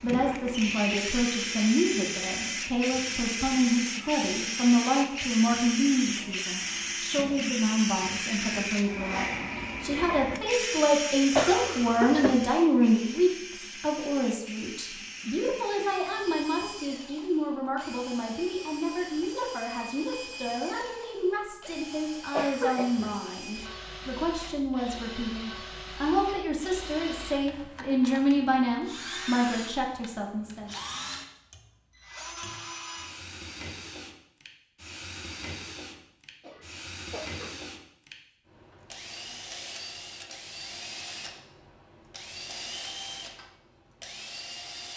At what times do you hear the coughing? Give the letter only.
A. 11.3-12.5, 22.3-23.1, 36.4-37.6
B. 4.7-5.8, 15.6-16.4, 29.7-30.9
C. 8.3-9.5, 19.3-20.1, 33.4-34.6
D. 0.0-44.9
A.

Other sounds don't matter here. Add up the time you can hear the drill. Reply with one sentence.
The drill can be heard for 45 seconds in total.